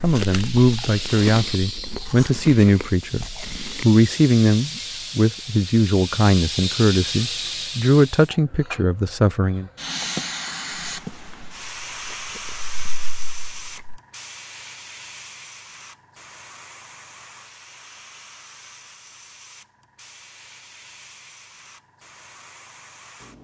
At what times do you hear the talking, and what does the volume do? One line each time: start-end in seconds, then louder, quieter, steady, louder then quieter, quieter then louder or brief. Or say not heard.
0.0-9.7 steady.